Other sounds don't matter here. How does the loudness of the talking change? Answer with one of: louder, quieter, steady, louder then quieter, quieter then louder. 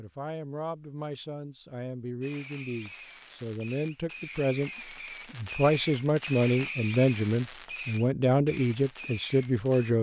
louder.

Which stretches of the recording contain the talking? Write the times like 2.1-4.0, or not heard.
0.0-4.7, 5.3-9.9.